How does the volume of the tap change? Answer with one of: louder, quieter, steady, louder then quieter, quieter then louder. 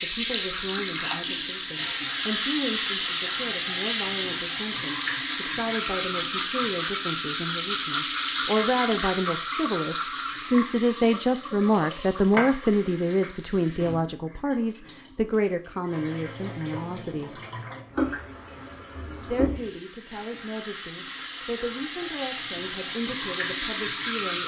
quieter then louder.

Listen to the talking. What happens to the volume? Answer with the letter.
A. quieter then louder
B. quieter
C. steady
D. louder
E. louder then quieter
E.